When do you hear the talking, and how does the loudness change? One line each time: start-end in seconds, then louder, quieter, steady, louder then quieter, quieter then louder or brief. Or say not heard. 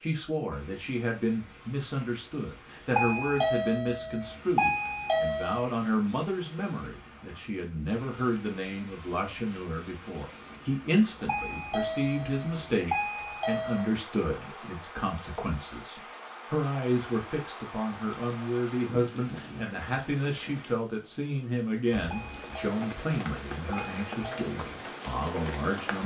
0.0-26.0 steady.